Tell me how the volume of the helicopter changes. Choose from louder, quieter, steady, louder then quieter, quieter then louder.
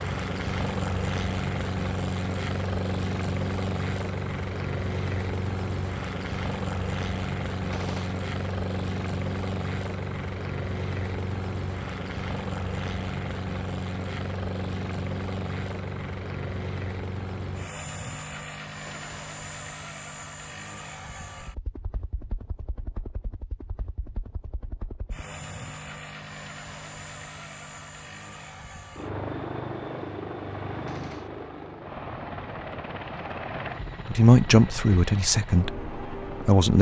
quieter then louder.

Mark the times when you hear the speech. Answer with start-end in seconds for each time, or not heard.
34.1-36.7.